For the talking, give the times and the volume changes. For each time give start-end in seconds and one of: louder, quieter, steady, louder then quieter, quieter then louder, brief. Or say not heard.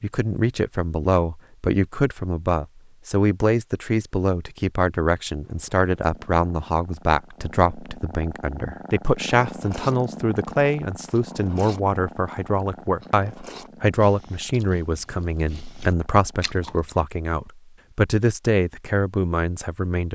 0.0-20.1 steady.